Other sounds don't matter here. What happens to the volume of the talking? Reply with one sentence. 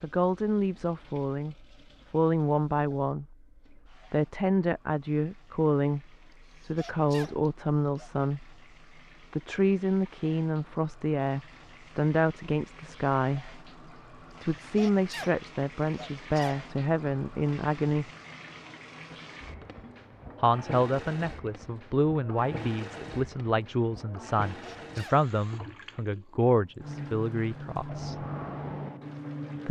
The loudness of the talking stays about the same.